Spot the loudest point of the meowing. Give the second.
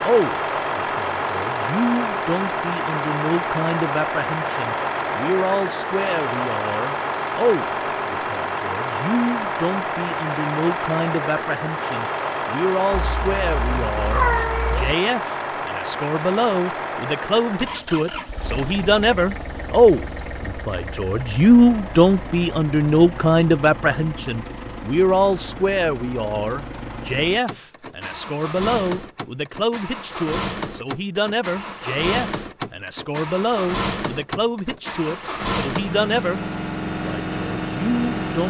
14 s.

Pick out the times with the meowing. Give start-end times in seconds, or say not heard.
12.9-14.9.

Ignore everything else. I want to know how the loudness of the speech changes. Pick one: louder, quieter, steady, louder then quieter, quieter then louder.
louder then quieter.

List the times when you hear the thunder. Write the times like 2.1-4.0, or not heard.
not heard.